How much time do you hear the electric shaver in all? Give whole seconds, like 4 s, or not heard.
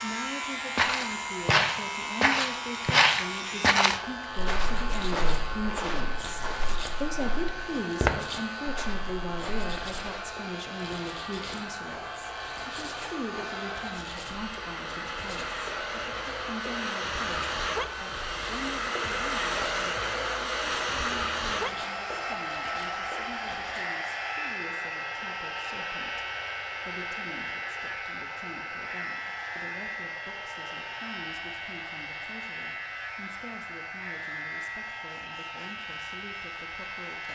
37 s.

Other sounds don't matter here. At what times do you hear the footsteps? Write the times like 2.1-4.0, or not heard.
0.7-10.2.